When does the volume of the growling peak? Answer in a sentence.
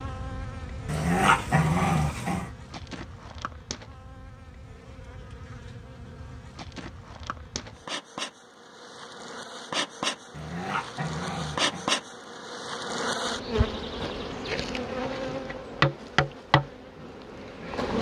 The volume of the growling peaks at 1 second.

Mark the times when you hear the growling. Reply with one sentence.
The growling can be heard from 0.8 to 2.5 s and from 10.3 to 11.9 s.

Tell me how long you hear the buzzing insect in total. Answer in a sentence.
You can hear the buzzing insect for 18 seconds altogether.